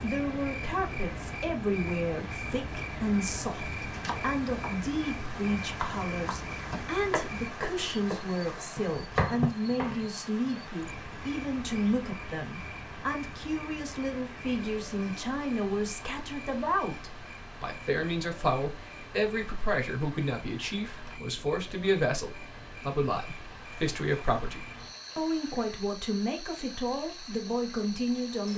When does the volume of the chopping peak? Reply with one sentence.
The loudest moment of the chopping is at 9 seconds.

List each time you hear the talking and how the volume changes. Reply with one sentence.
The talking can be heard from 0.0 to 28.5 s, at a steady volume.